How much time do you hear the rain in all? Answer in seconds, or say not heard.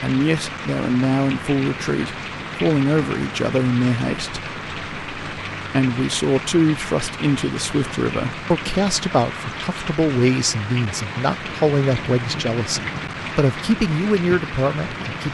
15 s.